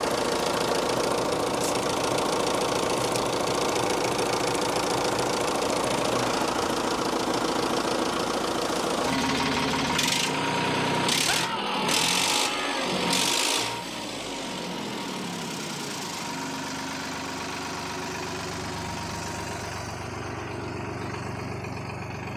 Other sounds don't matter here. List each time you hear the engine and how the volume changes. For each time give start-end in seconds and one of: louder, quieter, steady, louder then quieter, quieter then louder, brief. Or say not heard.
0.0-22.3 quieter.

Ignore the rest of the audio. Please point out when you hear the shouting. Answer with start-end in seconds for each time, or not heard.
11.2-12.9.